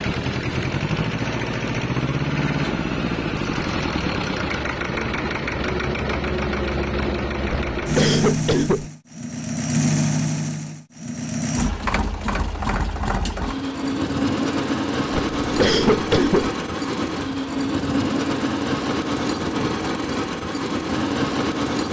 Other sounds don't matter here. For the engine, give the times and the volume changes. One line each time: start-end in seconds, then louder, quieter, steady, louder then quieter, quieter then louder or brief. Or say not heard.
0.0-21.8 steady.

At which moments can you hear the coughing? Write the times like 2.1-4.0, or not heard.
7.5-8.9, 15.1-16.5.